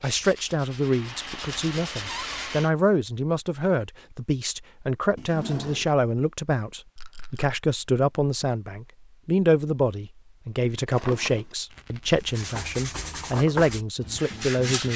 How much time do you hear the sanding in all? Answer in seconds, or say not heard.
5 s.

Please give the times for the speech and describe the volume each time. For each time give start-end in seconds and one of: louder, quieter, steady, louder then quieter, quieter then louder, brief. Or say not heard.
0.0-14.9 steady.